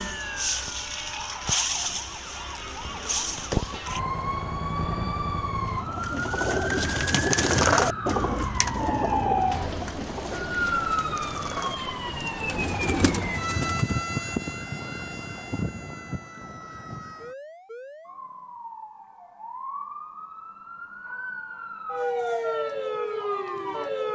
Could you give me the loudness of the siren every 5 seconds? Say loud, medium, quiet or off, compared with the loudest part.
loud, loud, loud, medium, loud.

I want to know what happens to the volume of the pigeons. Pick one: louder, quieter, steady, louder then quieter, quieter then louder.
quieter then louder.